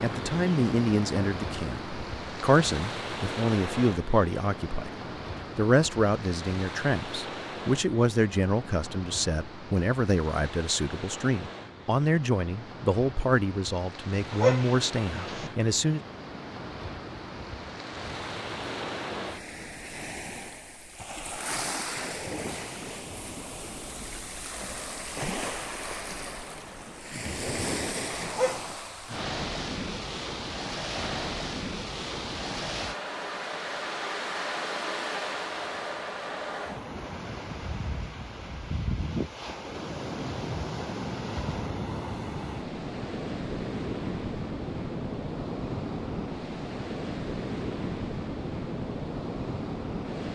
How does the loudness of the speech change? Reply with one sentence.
The loudness of the speech stays about the same.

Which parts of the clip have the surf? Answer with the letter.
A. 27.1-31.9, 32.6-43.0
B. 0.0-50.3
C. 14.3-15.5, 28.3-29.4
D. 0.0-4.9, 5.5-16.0
B.